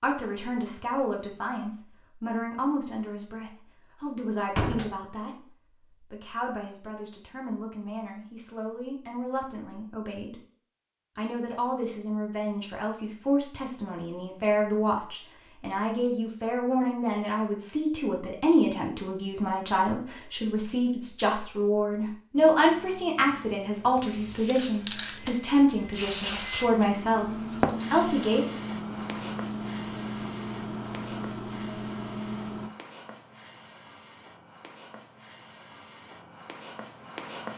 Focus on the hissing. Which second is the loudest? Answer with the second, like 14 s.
28 s.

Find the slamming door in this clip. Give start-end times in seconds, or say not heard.
4.5-5.0, 24.9-25.4.